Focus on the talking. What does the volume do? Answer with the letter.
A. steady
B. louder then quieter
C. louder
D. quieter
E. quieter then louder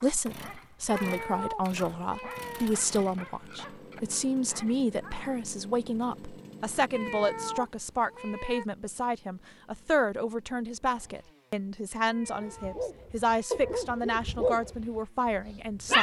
A.